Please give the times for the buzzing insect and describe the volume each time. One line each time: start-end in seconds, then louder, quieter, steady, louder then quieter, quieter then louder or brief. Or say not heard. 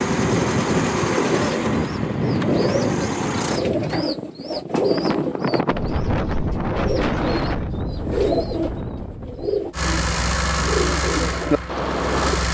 not heard.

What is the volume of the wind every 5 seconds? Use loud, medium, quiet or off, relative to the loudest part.
loud, loud, off.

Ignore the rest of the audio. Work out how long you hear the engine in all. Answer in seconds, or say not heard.
6 s.